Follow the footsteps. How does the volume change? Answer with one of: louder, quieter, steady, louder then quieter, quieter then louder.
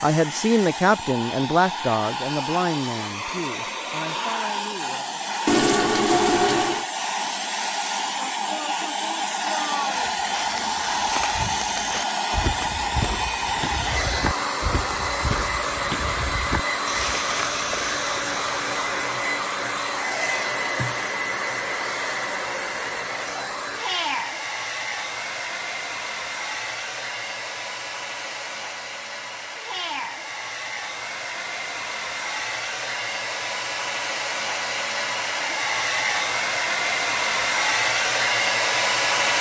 steady.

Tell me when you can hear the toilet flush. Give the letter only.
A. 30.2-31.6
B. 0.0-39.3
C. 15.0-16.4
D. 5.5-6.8
D.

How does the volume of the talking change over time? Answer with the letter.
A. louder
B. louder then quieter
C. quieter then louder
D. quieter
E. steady
D.